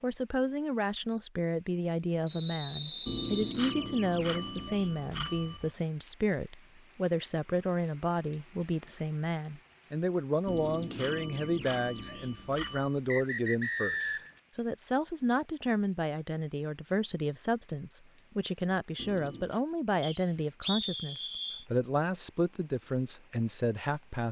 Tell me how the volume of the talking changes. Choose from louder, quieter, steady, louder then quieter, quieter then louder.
steady.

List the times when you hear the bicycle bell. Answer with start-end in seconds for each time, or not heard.
3.0-5.7, 10.4-12.9, 18.9-19.6.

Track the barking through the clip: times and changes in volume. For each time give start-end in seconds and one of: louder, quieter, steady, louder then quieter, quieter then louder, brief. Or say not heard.
not heard.